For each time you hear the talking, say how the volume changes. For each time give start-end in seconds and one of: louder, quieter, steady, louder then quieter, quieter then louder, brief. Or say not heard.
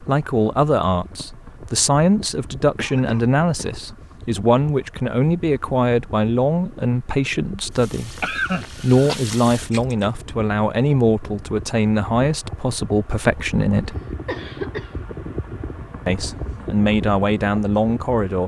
0.0-13.9 steady
16.1-18.4 brief.